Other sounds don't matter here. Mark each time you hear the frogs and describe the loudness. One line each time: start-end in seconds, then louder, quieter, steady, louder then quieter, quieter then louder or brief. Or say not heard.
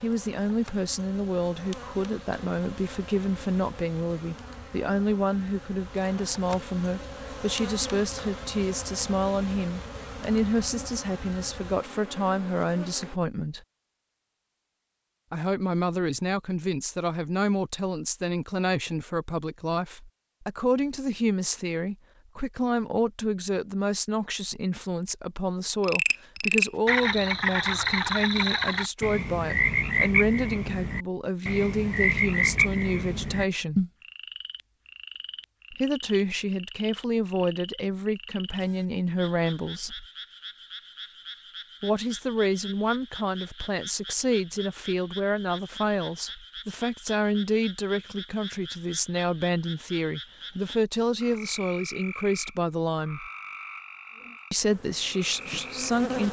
25.8-56.0 quieter.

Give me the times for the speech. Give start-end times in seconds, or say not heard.
0.0-13.6, 15.3-33.9, 35.7-40.0, 41.8-53.2, 54.5-56.2.